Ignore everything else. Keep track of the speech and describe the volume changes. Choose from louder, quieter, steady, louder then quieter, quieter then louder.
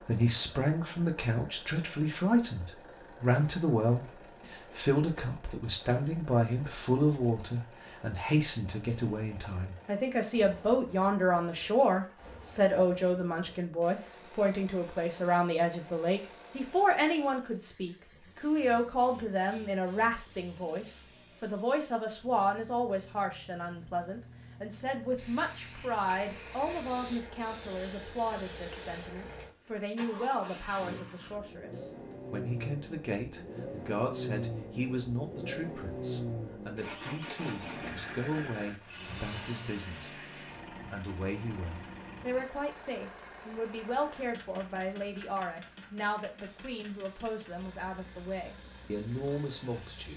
quieter.